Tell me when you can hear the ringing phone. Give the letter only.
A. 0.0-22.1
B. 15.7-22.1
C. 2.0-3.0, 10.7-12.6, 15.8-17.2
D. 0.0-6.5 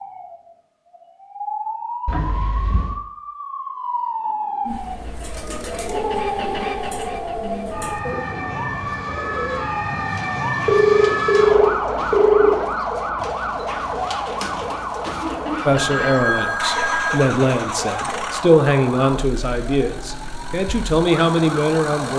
C.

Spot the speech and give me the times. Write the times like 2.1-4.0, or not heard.
15.7-22.1.